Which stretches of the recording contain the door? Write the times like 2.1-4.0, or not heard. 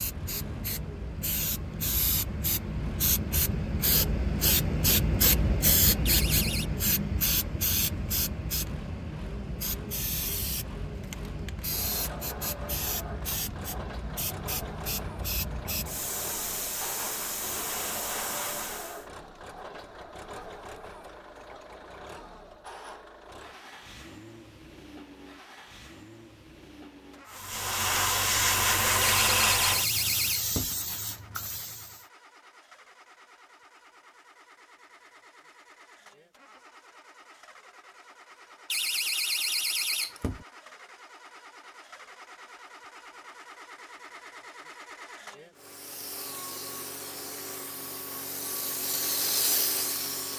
6.0-6.7, 29.1-30.8, 38.7-40.5.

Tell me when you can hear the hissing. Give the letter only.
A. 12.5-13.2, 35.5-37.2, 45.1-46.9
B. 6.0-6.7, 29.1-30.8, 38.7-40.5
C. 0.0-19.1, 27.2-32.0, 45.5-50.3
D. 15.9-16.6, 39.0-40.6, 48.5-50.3
C.